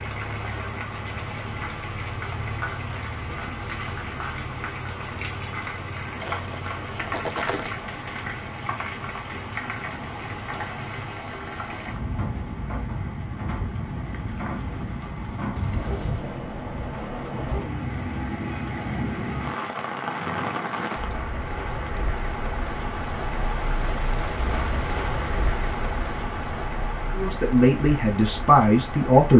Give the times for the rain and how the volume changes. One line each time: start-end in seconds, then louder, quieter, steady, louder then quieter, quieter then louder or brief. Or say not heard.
0.0-29.3 steady.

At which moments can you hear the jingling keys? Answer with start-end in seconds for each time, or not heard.
6.2-7.8, 15.6-16.2, 20.9-22.2.